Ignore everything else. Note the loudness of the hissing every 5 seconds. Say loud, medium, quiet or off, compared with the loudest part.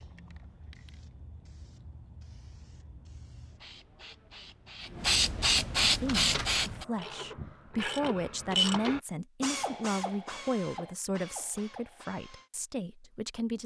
quiet, loud, off.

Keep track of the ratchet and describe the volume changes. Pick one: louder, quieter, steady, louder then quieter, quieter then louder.
louder then quieter.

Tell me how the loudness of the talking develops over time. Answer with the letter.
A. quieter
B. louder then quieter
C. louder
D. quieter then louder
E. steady
B.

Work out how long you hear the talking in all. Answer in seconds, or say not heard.
8 s.